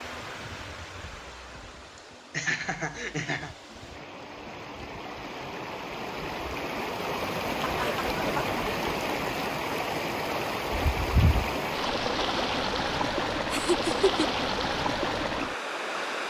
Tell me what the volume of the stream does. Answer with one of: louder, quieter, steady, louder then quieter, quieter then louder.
louder.